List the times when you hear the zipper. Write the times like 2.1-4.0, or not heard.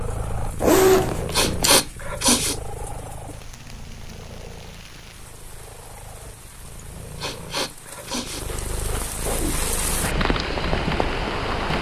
0.6-1.8, 8.4-9.6.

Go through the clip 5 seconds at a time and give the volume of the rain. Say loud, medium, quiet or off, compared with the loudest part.
quiet, quiet, loud.